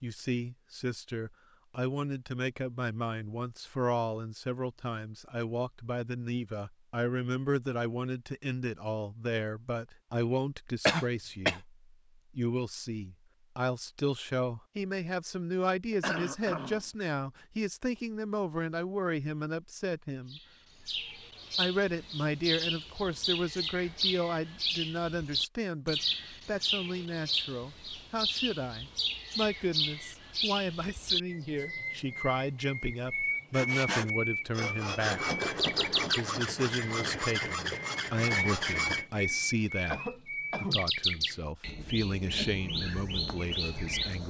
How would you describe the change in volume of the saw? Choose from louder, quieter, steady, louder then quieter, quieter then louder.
steady.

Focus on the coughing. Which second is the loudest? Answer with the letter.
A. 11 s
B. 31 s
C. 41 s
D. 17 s
A.